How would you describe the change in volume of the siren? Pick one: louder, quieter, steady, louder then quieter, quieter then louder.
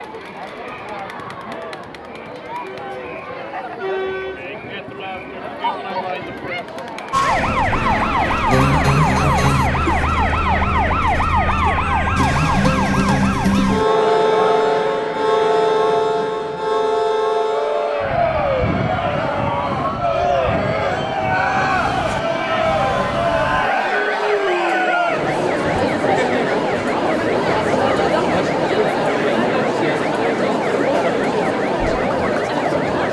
quieter.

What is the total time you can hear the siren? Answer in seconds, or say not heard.
26 s.